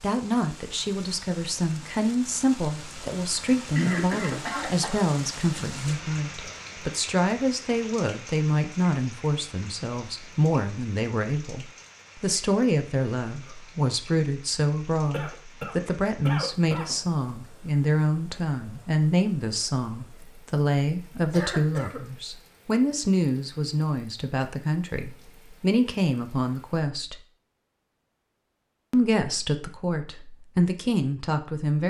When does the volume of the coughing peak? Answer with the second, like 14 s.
4 s.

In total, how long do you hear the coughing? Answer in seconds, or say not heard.
4 s.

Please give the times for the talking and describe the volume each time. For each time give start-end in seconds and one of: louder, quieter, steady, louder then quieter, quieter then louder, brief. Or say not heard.
0.0-27.2 steady
28.9-31.8 brief.